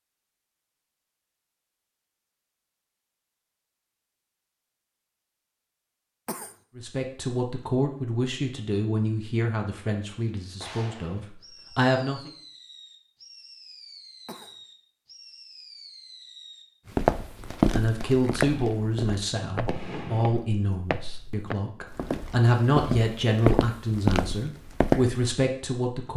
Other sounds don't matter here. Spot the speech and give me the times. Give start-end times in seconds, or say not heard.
6.8-12.3, 17.7-26.1.